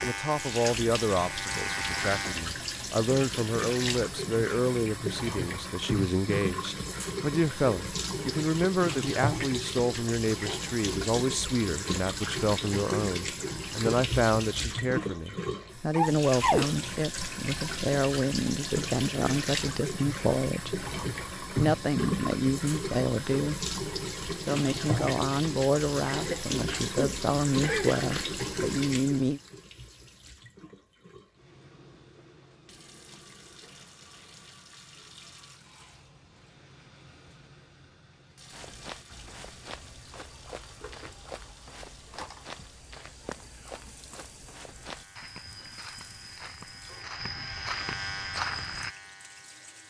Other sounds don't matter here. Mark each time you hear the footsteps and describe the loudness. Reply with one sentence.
The footsteps can be heard from 38.5 to 49.0 s, getting louder.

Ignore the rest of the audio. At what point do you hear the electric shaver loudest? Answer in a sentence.
The volume of the electric shaver peaks at 2 seconds.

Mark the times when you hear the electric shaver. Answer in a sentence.
You can hear the electric shaver from 0.0 to 2.5 s and from 44.6 to 49.8 s.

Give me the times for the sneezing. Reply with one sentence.
You can hear the sneezing from 15.9 to 16.8 s and from 26.1 to 28.3 s.